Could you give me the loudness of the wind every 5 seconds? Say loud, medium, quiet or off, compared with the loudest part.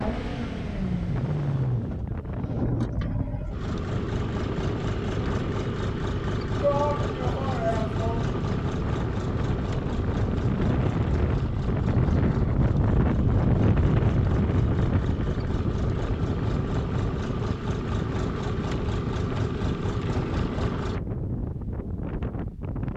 medium, medium, loud, medium, medium.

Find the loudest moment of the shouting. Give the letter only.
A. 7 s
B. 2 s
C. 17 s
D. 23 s
A.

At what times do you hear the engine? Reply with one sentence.
The engine can be heard from 0.0 to 21.0 s.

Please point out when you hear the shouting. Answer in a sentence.
The shouting can be heard from 6.6 to 8.2 s.